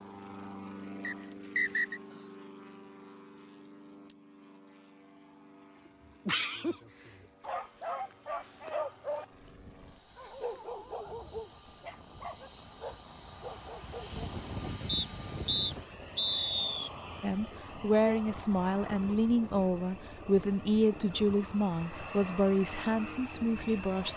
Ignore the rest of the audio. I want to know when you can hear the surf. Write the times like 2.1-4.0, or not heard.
not heard.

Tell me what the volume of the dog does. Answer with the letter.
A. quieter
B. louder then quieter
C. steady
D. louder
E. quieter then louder
A.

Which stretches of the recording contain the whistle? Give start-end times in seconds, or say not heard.
1.0-2.0, 14.8-16.9.